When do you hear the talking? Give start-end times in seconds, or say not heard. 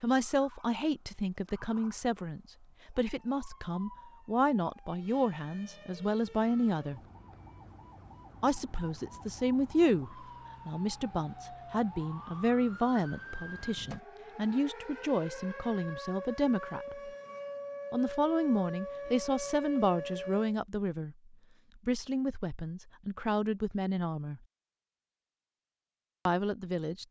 0.0-7.0, 8.4-17.1, 17.9-24.4, 26.2-27.0.